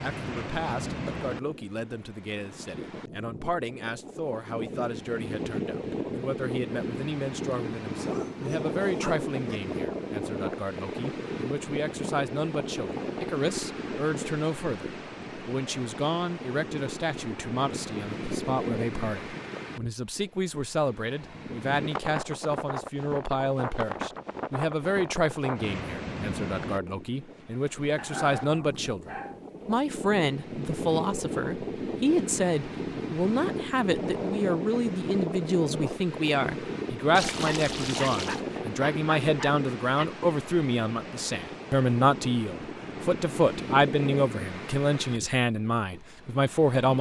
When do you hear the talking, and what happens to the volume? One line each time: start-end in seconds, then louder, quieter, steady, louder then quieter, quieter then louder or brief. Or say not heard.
0.0-46.9 louder.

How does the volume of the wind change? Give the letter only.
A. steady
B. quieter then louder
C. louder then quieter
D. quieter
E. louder
A.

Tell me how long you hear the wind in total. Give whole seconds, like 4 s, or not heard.
47 s.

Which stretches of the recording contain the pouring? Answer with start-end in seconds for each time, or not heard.
37.1-38.4.